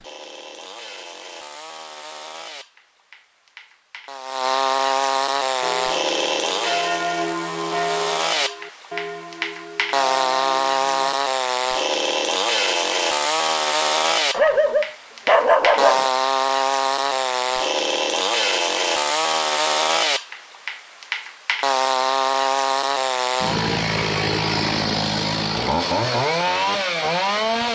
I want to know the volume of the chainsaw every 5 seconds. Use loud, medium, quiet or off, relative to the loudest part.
medium, loud, loud, loud, loud, loud.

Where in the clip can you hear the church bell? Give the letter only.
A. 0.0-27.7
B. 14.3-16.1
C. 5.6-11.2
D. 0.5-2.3
C.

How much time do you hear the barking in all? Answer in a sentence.
You can hear the barking for 2 seconds altogether.